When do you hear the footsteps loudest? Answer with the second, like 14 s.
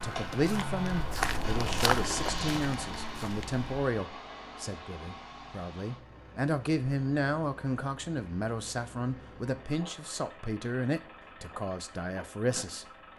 2 s.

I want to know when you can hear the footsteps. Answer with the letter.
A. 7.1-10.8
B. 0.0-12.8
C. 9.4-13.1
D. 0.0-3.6
D.